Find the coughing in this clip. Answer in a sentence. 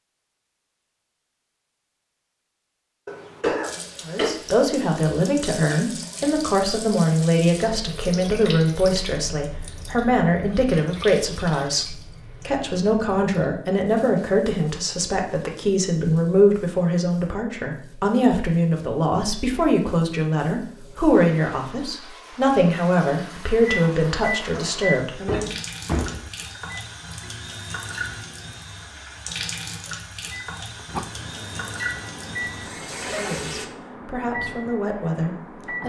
The coughing can be heard from 3.0 to 4.3 s and from 32.9 to 33.5 s.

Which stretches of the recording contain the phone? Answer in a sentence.
The phone can't be heard in this clip.